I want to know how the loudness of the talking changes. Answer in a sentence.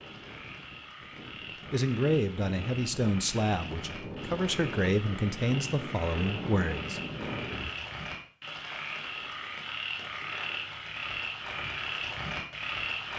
The loudness of the talking stays about the same.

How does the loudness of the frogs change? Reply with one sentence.
The loudness of the frogs goes up.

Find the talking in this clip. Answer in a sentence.
The talking can be heard from 1.7 to 7.0 s.